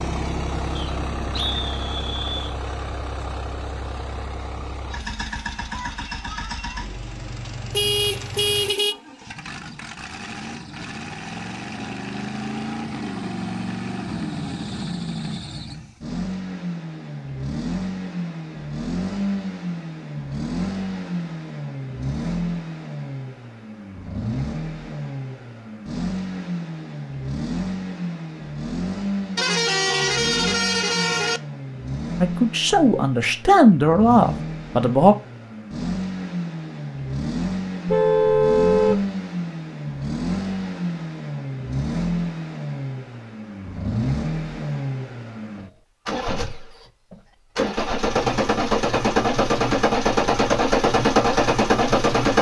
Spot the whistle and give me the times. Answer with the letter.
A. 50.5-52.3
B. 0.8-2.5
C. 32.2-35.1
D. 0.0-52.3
B.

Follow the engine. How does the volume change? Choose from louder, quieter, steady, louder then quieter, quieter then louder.
louder.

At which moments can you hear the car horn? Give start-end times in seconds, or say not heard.
7.7-8.9, 29.4-31.4, 37.9-39.0.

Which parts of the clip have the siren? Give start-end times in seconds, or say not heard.
not heard.